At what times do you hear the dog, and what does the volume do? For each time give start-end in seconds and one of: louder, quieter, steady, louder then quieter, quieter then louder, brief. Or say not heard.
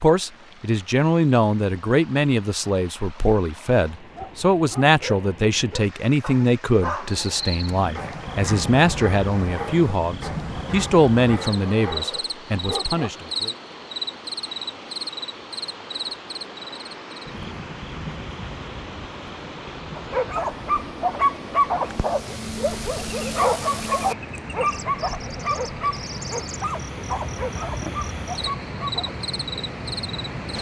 4.2-13.3 steady
19.9-29.1 quieter.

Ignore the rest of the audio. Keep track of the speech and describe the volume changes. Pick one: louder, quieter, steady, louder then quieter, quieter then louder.
steady.